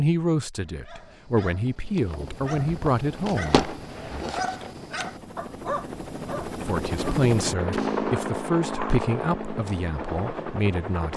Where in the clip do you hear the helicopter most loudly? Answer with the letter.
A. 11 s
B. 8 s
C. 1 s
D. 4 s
B.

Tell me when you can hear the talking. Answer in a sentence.
The talking can be heard from 0.0 to 4.3 s and from 6.7 to 11.1 s.